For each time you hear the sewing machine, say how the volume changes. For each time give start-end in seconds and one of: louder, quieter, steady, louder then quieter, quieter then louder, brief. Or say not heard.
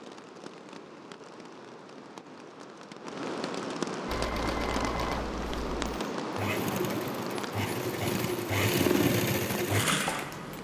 4.0-10.6 louder.